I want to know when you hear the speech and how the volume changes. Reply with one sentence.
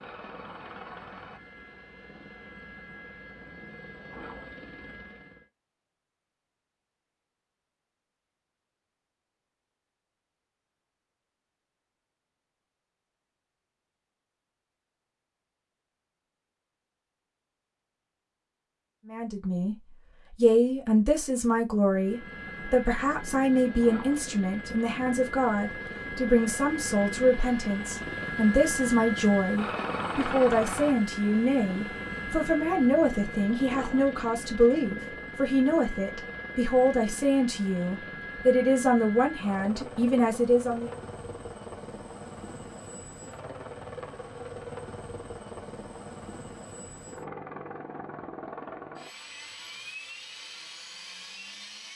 The speech can be heard briefly from 19.1 to 19.8 s; and from 20.4 to 40.9 s, at a steady volume.